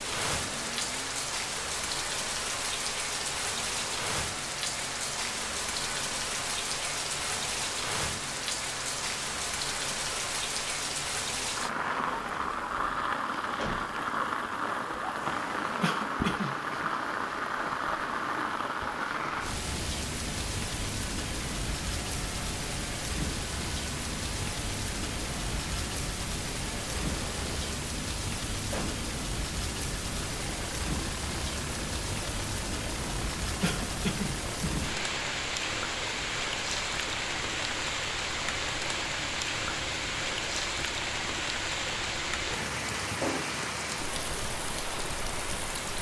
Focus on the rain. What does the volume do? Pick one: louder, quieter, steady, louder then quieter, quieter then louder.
steady.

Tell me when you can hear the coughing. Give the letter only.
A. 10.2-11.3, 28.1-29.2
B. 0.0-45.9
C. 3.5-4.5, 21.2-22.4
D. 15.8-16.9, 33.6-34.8
D.